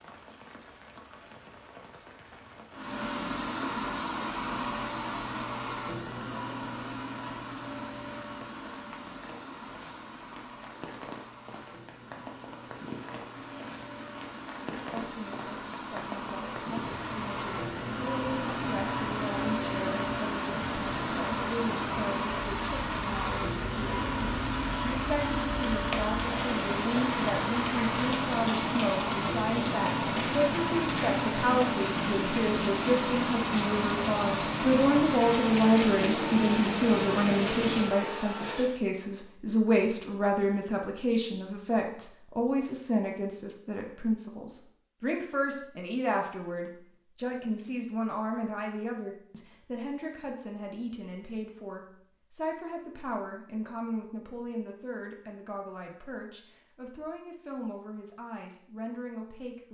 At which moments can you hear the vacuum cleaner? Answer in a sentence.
You can hear the vacuum cleaner from 2.7 to 38.8 s.